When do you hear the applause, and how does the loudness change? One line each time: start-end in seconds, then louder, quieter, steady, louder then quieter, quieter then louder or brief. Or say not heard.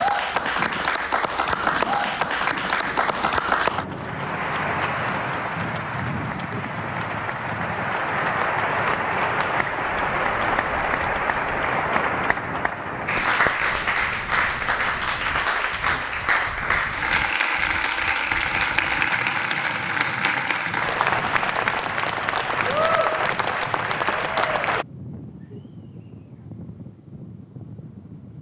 0.0-24.9 steady.